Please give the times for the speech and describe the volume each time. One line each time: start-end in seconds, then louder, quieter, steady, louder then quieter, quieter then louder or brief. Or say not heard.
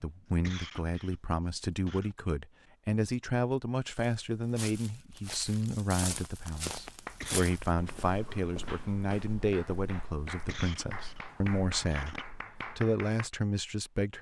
0.0-14.1 steady.